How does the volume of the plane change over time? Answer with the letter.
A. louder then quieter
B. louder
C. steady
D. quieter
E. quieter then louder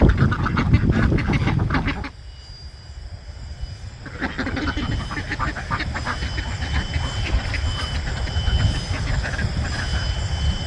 B.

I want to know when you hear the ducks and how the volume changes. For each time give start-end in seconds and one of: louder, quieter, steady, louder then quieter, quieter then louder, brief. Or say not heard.
0.0-2.1 brief
4.0-10.1 quieter.